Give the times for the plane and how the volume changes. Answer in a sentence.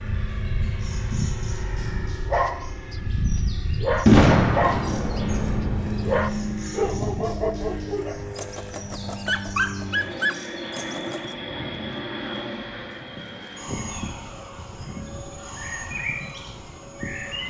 The plane can be heard from 0.0 to 17.4 s, getting quieter.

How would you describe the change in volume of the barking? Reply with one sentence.
The volume of the barking goes down, then up.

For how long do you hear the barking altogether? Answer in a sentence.
The barking can be heard for 9 seconds in total.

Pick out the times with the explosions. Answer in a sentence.
You can hear the explosions from 4.0 to 6.2 s.